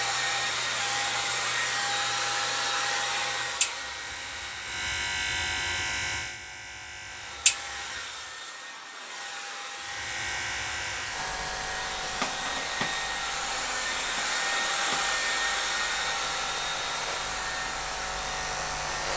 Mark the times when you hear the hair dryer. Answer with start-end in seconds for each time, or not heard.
0.0-4.8, 7.0-19.1.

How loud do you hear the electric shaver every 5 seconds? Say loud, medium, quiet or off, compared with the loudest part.
medium, loud, medium, medium.